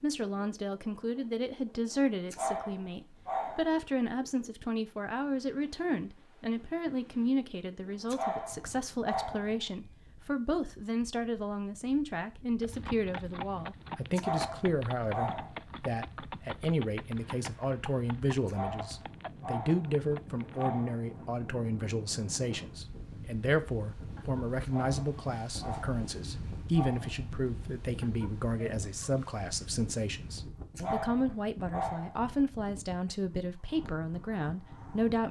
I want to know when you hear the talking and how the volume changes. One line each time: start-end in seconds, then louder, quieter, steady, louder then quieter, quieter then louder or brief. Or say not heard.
0.0-35.2 steady.